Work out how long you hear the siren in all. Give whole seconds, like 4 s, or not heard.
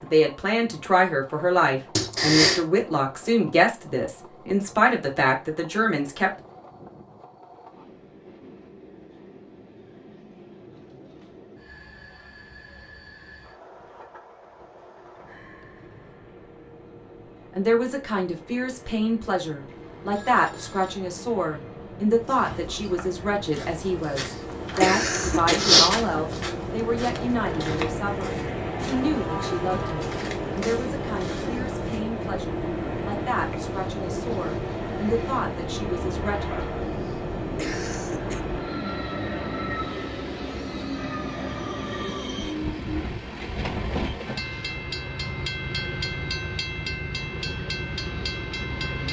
not heard.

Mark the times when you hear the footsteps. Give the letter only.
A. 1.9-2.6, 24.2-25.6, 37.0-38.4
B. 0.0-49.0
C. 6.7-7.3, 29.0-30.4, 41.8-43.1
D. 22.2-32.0
D.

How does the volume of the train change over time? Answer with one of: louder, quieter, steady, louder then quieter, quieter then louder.
louder.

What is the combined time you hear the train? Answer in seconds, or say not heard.
49 s.